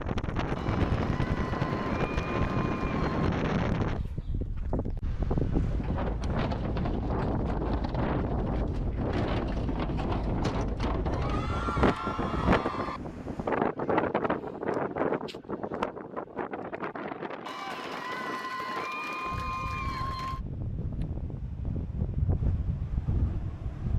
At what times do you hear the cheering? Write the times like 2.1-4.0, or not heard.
0.6-3.3, 11.1-13.0, 17.4-20.4.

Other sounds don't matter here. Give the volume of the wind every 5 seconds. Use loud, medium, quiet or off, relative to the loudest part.
loud, loud, loud, medium, medium.